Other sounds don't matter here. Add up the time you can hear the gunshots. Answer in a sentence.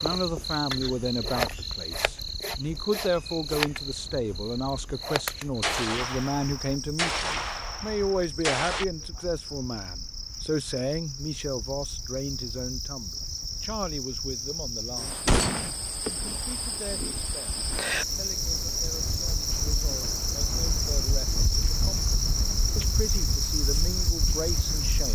You can hear the gunshots for 4 seconds altogether.